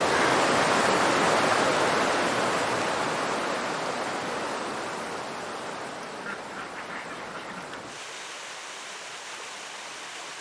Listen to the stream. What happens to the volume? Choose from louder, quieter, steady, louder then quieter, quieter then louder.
quieter.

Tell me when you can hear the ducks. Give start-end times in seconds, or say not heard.
6.2-7.8.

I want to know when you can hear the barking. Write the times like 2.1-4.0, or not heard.
not heard.